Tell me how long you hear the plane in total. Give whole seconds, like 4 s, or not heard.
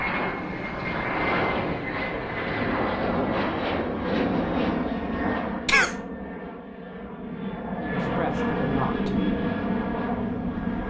11 s.